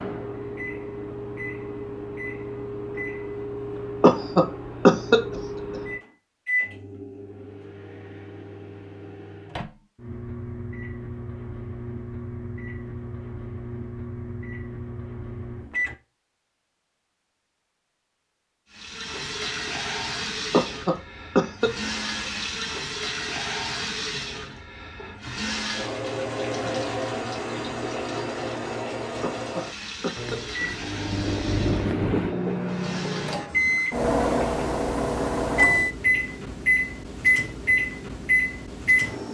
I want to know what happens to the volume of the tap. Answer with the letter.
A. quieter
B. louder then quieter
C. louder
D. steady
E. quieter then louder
A.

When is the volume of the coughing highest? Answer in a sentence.
The loudest moment of the coughing is at 5 seconds.